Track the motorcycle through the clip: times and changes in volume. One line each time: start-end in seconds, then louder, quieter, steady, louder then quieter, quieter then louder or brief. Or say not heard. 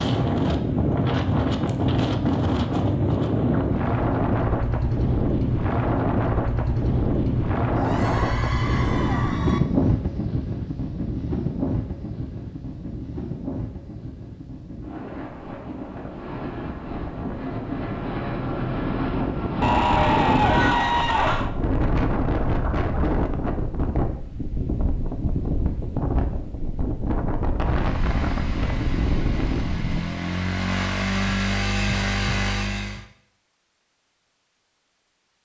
27.6-33.0 louder.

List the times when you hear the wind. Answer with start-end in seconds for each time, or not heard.
0.0-30.1.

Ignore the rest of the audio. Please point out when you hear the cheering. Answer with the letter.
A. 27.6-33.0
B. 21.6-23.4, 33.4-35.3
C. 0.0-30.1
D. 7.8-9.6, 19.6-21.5
D.